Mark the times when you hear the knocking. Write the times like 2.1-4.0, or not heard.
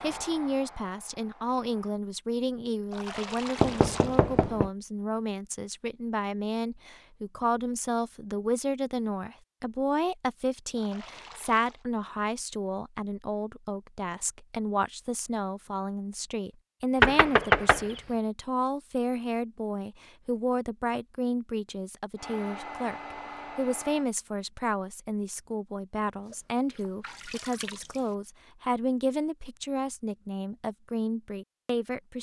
3.5-4.7, 17.0-18.0.